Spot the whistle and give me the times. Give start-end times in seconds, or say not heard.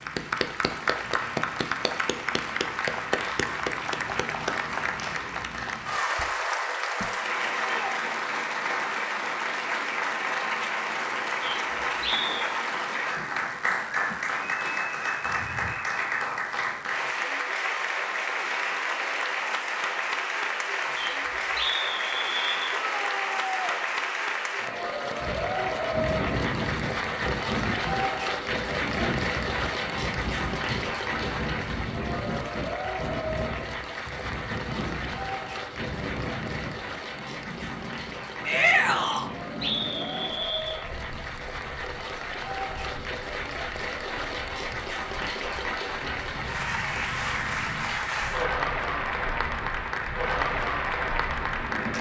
11.4-12.3, 20.9-22.7, 39.0-40.8.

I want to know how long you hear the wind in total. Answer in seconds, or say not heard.
27 s.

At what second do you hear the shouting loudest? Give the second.
39 s.